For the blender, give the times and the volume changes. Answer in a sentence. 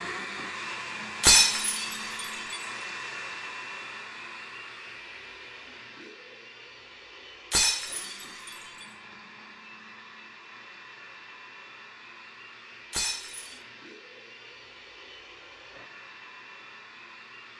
The blender can be heard from 0.0 to 17.5 s, getting quieter.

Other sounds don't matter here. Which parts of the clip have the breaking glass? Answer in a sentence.
The breaking glass can be heard from 1.2 to 2.5 s, from 7.5 to 8.8 s and from 12.9 to 13.6 s.